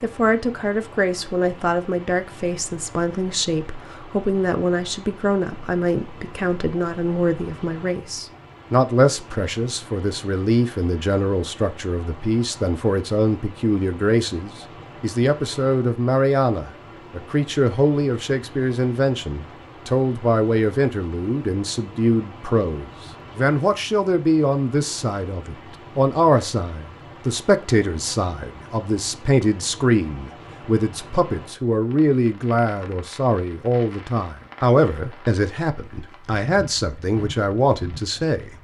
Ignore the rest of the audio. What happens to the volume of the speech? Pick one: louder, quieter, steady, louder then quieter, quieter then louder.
steady.